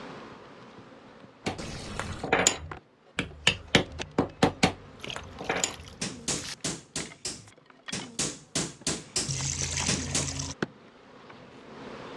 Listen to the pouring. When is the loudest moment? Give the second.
10 s.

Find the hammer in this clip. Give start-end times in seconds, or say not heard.
1.4-10.3.